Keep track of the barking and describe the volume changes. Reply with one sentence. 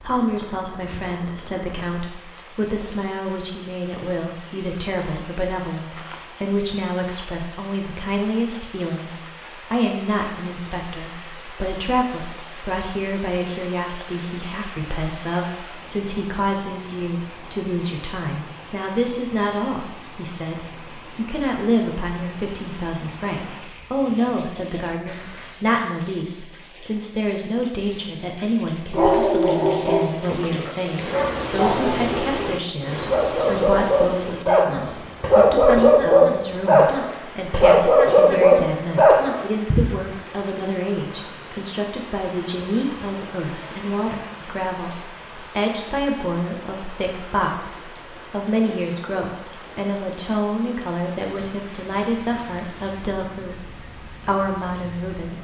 The volume of the barking goes down, then up.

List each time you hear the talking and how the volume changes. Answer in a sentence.
You can hear the talking from 0.0 to 55.3 s, at a steady volume.